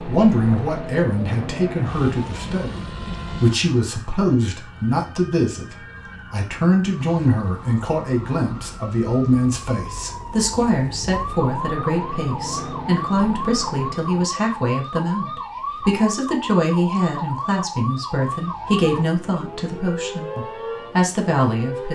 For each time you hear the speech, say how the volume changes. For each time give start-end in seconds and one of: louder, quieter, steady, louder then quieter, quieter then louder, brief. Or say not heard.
0.1-21.8 steady.